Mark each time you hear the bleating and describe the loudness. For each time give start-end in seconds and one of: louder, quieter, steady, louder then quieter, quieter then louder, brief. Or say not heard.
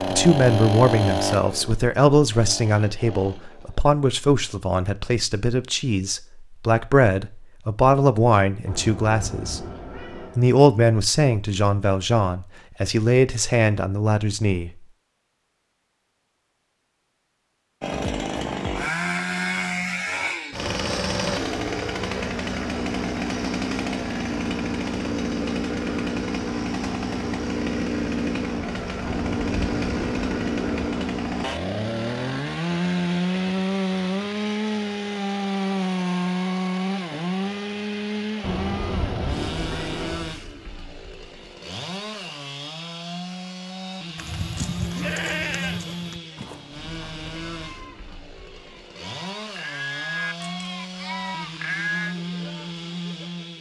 44.1-52.1 quieter then louder.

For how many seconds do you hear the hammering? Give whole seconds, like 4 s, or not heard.
not heard.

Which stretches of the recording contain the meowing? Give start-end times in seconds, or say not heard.
8.7-10.4, 29.0-31.1, 38.4-40.3.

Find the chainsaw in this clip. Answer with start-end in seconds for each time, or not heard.
0.0-3.8, 17.8-53.5.